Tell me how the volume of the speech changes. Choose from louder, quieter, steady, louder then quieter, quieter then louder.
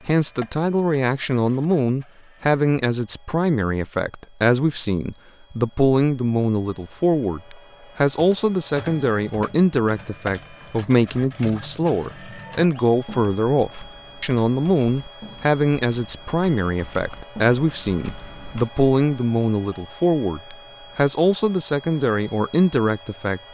steady.